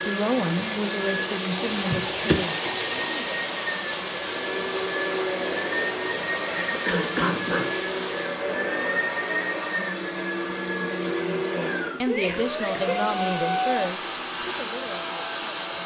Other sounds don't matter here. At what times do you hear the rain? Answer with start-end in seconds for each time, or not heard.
0.0-8.2.